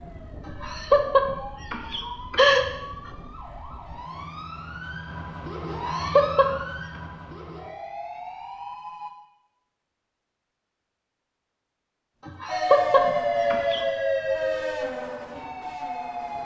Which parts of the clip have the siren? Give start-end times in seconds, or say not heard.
0.0-9.1, 12.4-16.3.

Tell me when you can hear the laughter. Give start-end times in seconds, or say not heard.
0.5-2.6, 5.7-6.5, 12.2-13.8.